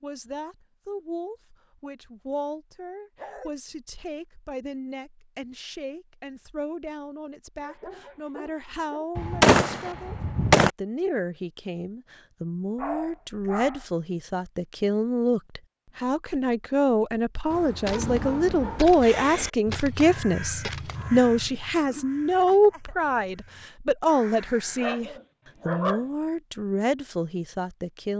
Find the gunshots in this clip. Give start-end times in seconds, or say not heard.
9.2-10.7, 17.9-21.1.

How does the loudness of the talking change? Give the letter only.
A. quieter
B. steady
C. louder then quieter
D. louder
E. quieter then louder
D.